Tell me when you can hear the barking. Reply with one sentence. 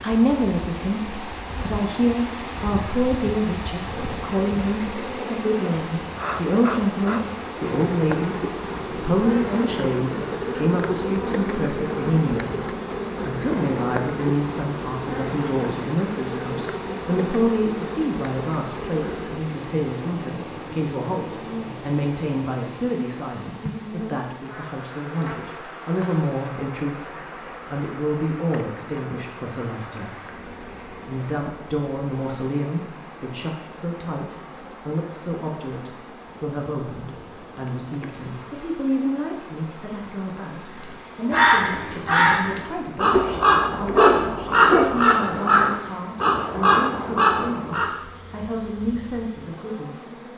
You can hear the barking from 43.1 to 45.0 s.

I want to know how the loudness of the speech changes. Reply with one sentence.
The loudness of the speech goes down.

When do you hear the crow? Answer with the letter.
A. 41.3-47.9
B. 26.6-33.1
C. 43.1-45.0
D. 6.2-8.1
A.